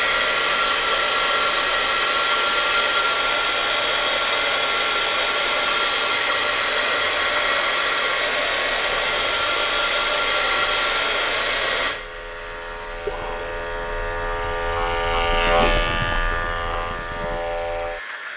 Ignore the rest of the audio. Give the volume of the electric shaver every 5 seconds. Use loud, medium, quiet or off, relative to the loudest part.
quiet, quiet, medium, loud.